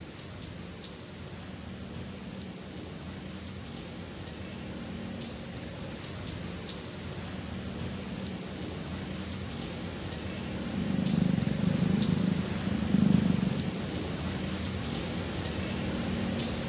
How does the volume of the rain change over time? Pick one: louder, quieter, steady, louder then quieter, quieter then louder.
louder.